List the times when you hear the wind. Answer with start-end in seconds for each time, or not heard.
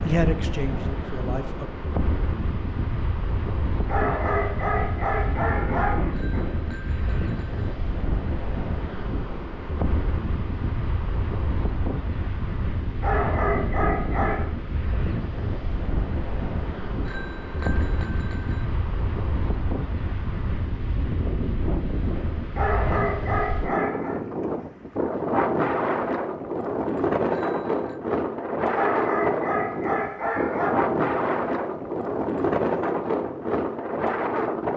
0.0-34.7.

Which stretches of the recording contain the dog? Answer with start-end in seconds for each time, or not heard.
3.9-6.5, 13.0-14.5, 22.6-24.2, 28.7-30.7.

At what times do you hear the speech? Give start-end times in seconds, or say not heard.
0.0-1.7.